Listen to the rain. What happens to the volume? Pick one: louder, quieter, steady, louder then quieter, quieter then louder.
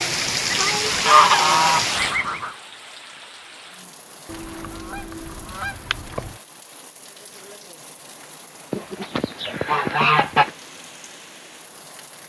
quieter.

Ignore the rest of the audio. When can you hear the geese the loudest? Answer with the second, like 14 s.
1 s.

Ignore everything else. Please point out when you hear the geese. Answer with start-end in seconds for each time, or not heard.
0.5-2.5, 4.3-6.3, 8.7-10.5.